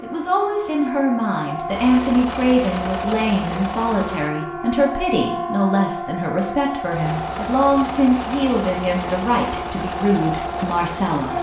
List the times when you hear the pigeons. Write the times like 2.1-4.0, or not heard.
not heard.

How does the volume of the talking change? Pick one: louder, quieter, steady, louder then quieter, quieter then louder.
steady.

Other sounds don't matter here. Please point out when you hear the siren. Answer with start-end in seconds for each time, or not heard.
0.0-11.3.